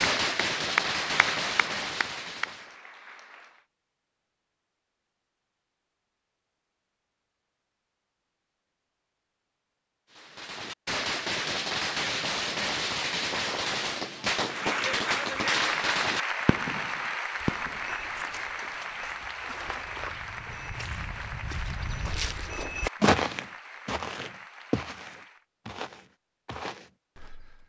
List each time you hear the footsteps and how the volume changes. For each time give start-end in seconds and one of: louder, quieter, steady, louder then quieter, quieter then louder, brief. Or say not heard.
17.4-27.6 louder then quieter.